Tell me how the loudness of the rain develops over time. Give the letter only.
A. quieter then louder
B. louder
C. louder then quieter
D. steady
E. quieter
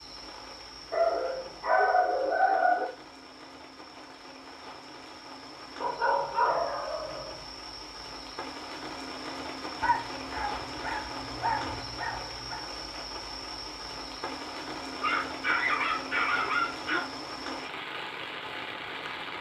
B.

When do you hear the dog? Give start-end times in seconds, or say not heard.
0.9-2.9, 5.8-7.3, 9.8-12.7, 15.0-17.0.